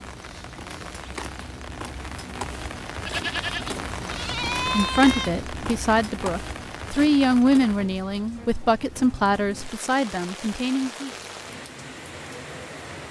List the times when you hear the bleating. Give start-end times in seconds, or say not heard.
3.0-5.3.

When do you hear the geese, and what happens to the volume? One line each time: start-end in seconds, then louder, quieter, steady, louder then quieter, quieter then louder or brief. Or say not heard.
not heard.